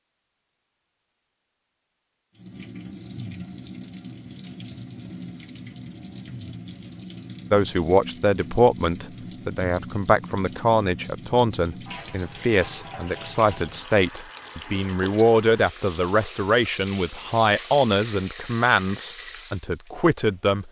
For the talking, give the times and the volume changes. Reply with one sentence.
You can hear the talking from 7.5 to 20.6 s, at a steady volume.